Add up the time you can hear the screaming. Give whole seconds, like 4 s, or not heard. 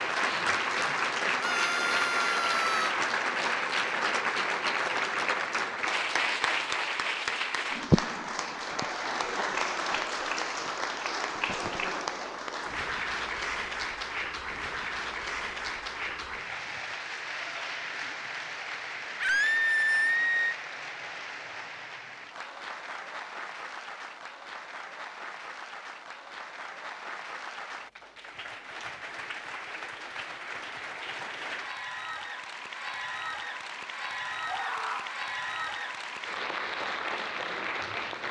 4 s.